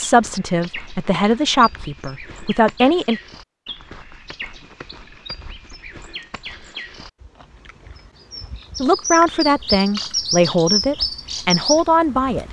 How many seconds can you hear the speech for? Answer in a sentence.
The speech can be heard for 7 seconds in total.